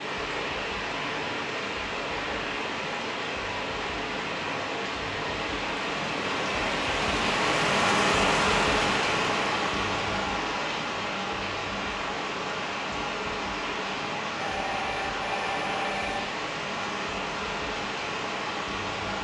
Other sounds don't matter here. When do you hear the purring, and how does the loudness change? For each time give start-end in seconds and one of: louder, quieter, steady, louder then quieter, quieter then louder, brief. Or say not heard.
not heard.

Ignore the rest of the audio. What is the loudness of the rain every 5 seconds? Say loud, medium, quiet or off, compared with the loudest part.
medium, loud, medium, medium.